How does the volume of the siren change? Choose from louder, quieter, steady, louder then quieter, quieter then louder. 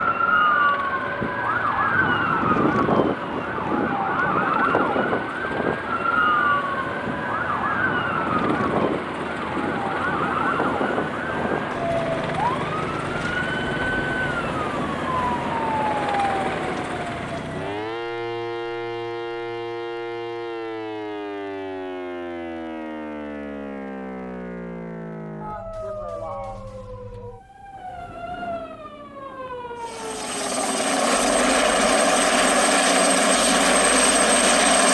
quieter.